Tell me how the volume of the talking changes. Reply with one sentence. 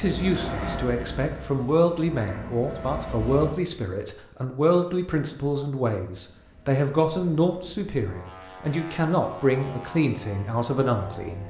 The loudness of the talking stays about the same.